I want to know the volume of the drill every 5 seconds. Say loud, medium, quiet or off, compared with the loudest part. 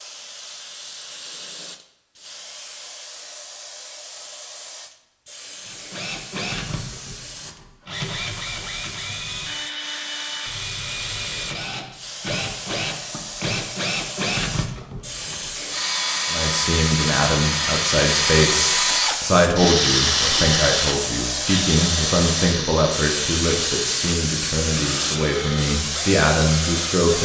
off, medium, medium, loud, loud, medium.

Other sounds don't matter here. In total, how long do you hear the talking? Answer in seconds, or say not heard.
11 s.